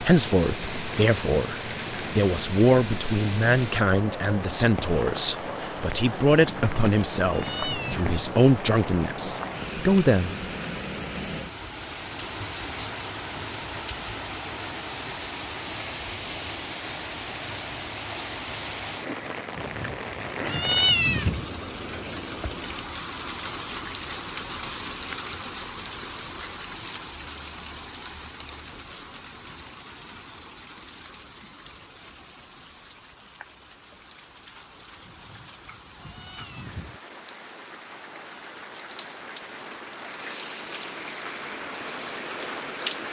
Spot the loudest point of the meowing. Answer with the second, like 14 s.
21 s.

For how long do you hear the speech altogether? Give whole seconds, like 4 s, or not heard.
10 s.